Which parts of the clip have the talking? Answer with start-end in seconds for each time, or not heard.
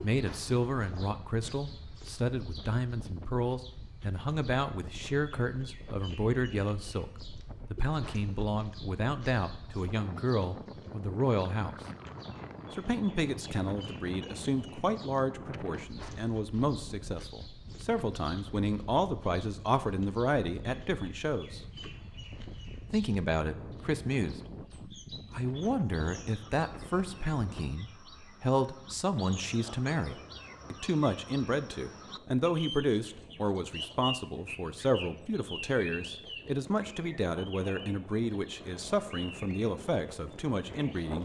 0.0-11.8, 12.7-21.6, 22.9-24.4, 25.3-41.2.